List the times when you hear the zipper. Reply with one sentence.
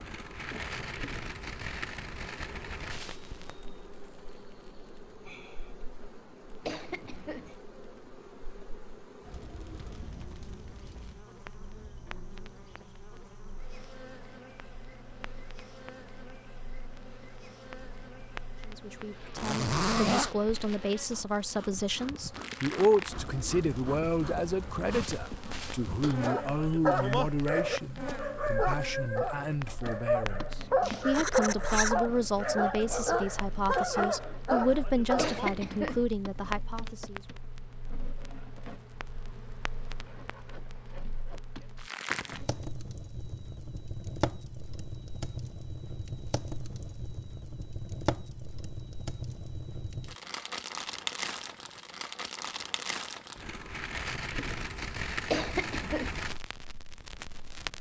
You can hear the zipper from 19.4 to 20.4 s and from 30.8 to 31.9 s.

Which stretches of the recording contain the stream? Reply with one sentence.
You can't hear the stream here.